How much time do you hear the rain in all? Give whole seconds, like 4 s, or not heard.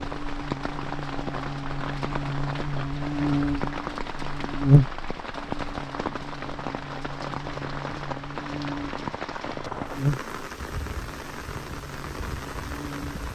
13 s.